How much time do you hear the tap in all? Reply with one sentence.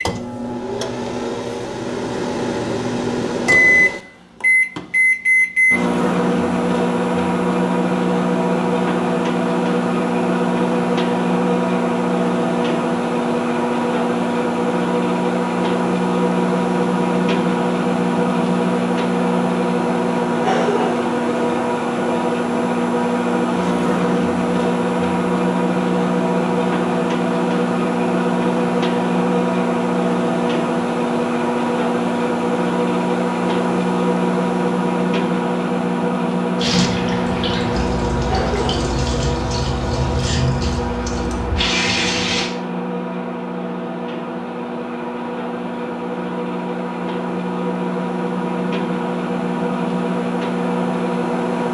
You can hear the tap for 6 seconds altogether.